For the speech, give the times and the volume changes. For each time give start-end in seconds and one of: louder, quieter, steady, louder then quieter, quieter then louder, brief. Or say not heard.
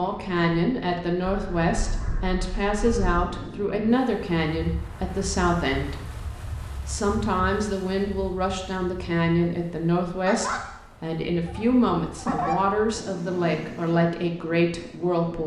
0.0-15.4 steady.